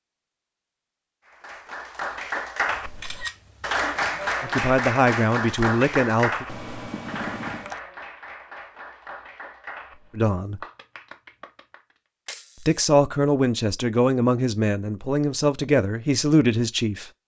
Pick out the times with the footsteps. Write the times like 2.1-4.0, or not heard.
not heard.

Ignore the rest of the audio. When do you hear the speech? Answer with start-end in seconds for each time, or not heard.
4.4-6.5, 10.2-10.6, 12.6-17.1.